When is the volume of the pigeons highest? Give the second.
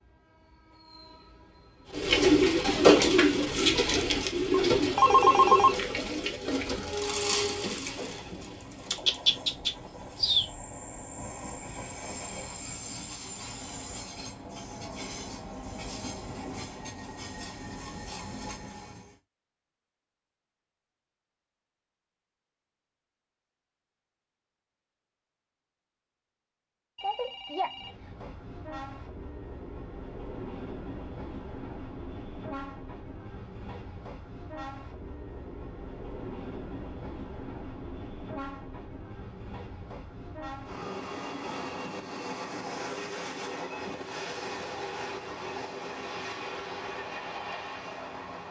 3 s.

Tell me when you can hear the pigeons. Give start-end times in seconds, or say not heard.
1.9-10.5.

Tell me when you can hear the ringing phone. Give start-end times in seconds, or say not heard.
4.5-5.8, 26.9-28.1.